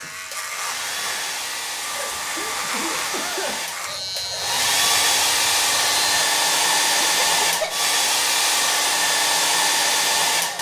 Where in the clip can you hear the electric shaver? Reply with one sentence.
You can hear the electric shaver from 0.0 to 6.2 s.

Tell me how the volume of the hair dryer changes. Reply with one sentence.
The loudness of the hair dryer goes up.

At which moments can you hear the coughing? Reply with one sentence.
The coughing can be heard from 1.9 to 3.6 s and from 7.2 to 7.9 s.